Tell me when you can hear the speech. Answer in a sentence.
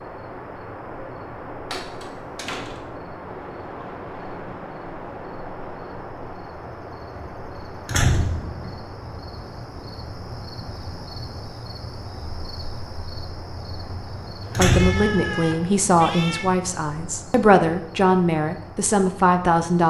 The speech can be heard from 14.6 to 19.8 s.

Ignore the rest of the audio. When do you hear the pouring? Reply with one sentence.
The pouring can't be heard in this clip.